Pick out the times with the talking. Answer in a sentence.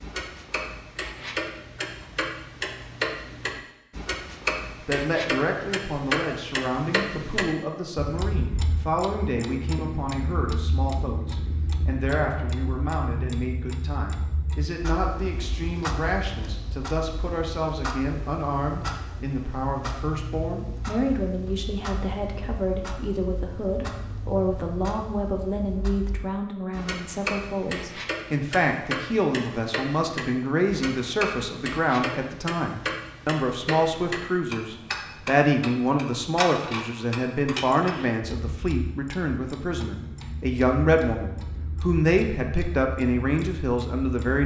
You can hear the talking from 4.8 to 44.4 s.